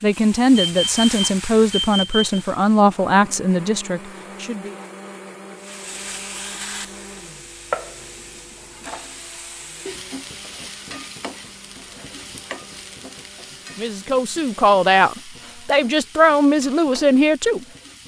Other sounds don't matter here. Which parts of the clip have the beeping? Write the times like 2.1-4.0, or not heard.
0.6-2.4.